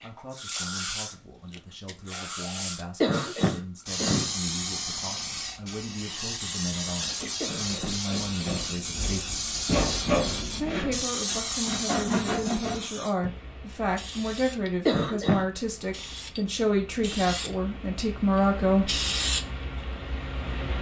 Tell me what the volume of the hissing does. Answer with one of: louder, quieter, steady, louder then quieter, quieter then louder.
quieter then louder.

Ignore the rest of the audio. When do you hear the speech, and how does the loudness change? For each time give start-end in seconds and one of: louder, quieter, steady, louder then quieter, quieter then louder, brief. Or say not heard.
0.0-9.5 louder
10.6-19.1 louder.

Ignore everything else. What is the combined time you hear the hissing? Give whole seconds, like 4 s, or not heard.
21 s.